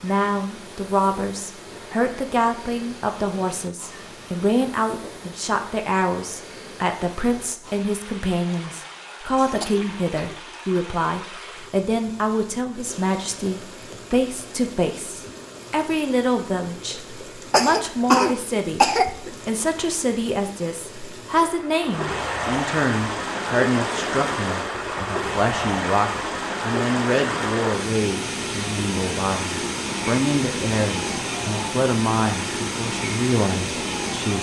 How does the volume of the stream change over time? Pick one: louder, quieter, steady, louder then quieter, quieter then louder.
louder.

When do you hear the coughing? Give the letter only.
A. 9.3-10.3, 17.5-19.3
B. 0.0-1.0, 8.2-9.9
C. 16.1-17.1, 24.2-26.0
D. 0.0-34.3
A.